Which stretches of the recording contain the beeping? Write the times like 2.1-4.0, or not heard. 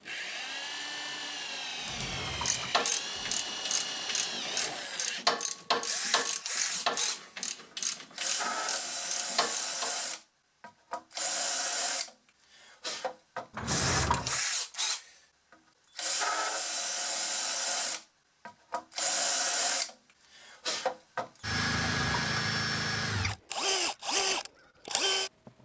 not heard.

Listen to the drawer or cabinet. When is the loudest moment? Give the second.
14 s.